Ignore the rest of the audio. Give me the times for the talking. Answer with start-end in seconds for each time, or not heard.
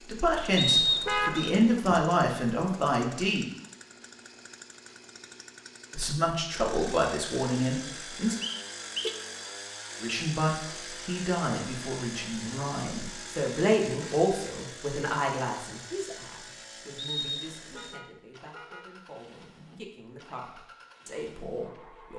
0.1-3.5, 5.9-8.3, 10.0-22.1.